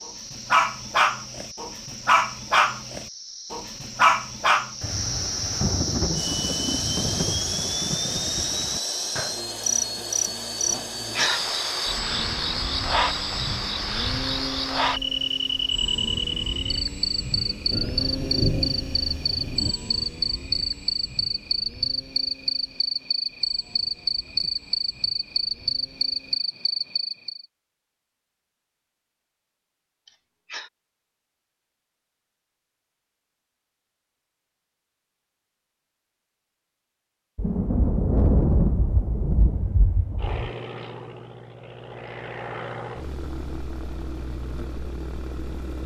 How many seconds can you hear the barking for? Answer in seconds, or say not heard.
5 s.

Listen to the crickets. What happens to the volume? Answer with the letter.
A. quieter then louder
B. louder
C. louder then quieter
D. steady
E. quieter
B.